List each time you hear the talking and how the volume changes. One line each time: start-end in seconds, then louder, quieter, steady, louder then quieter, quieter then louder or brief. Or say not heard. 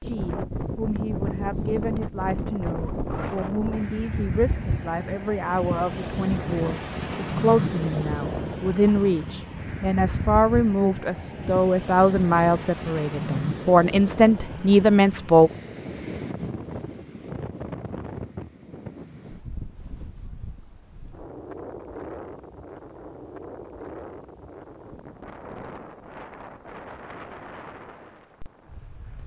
0.0-15.5 louder.